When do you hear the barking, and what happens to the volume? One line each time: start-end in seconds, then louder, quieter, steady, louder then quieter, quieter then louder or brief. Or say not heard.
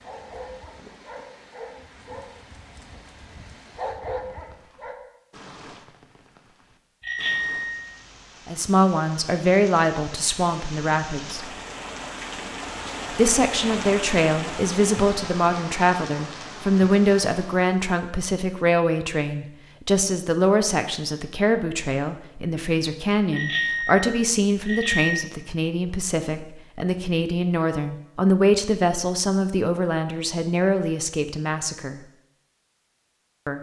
0.0-5.0 quieter then louder.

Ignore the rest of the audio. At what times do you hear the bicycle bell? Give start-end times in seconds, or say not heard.
7.0-8.1, 23.3-25.2.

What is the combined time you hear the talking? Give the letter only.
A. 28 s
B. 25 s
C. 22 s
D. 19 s
C.